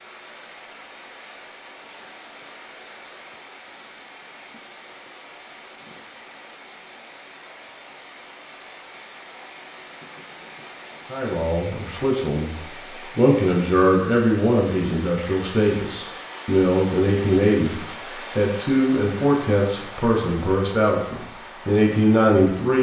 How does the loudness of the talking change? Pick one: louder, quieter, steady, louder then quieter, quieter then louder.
steady.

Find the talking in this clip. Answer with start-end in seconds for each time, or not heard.
11.1-22.7.